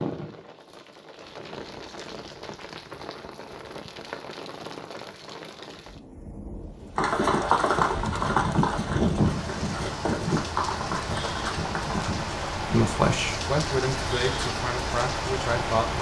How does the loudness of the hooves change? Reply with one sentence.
The loudness of the hooves goes down.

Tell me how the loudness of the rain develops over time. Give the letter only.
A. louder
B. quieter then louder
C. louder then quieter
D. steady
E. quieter
A.